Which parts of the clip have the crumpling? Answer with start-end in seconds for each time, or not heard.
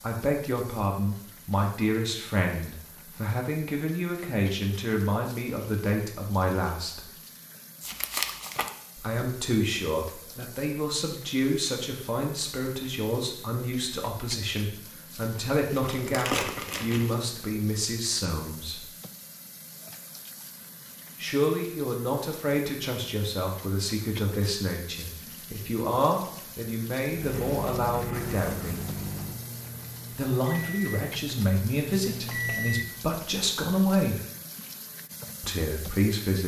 7.8-8.7, 15.7-17.1, 27.2-29.2.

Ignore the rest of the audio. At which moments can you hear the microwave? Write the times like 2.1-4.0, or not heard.
27.1-33.1.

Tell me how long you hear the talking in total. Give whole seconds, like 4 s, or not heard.
30 s.